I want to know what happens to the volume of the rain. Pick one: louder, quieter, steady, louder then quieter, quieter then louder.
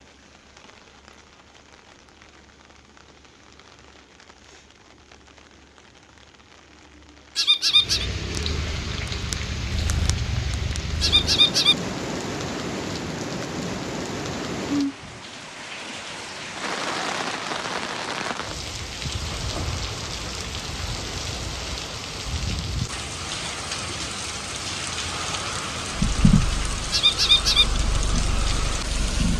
louder.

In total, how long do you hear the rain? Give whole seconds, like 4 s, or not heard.
29 s.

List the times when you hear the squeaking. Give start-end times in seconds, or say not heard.
7.3-8.1, 11.0-11.8, 26.9-27.6.